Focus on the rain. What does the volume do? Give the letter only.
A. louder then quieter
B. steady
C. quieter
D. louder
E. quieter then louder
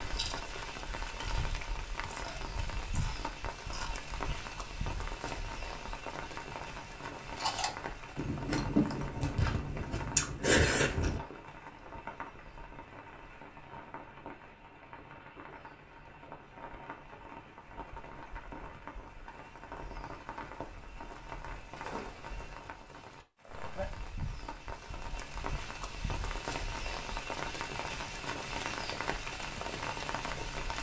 E.